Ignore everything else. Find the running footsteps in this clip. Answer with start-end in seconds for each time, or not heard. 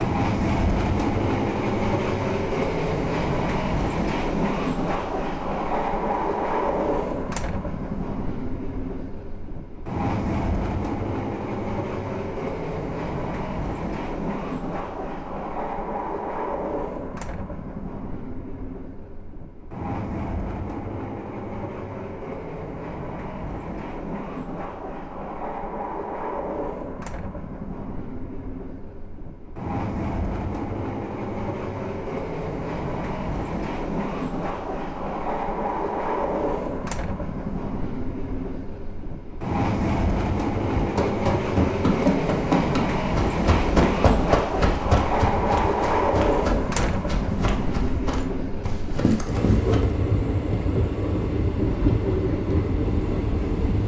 40.8-49.9.